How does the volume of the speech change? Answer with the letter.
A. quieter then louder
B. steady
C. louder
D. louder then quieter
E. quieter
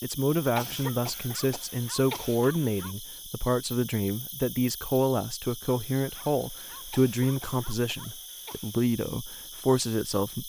B.